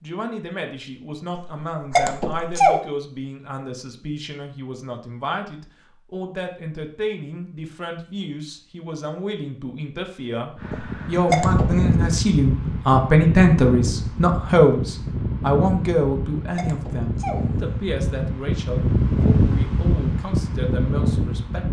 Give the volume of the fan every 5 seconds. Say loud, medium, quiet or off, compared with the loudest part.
off, off, loud, loud, loud.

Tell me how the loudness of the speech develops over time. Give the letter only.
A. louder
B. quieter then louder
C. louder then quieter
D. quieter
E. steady
C.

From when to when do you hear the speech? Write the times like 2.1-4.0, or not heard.
0.0-21.6.